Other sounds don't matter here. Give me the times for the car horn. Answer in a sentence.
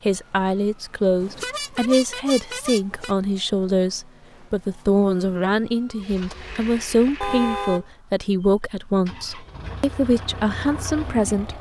You can hear the car horn from 1.2 to 3.1 s and from 7.2 to 7.8 s.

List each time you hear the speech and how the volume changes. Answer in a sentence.
The speech can be heard from 0.1 to 11.5 s, at a steady volume.